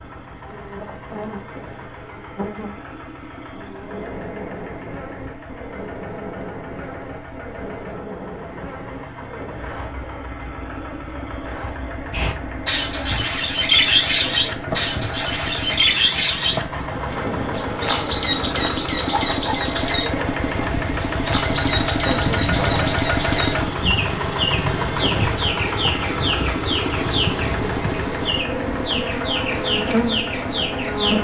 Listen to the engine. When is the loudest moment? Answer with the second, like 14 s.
23 s.